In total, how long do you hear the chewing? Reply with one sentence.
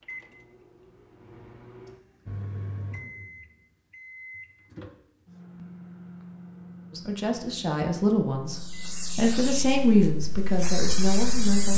You can't hear the chewing here.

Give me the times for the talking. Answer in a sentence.
The talking can be heard from 6.9 to 11.7 s.